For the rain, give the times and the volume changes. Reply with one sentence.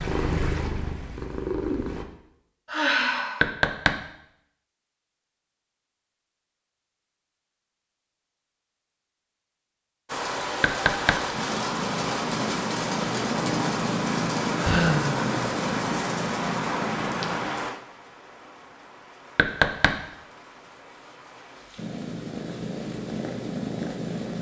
The rain can be heard from 10.1 to 24.3 s, getting quieter.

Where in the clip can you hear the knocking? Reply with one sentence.
The knocking can be heard from 3.4 to 4.0 s, from 10.6 to 11.2 s and from 19.4 to 20.0 s.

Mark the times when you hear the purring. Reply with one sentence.
You can hear the purring from 0.0 to 2.0 s, from 11.3 to 17.5 s and from 21.8 to 24.3 s.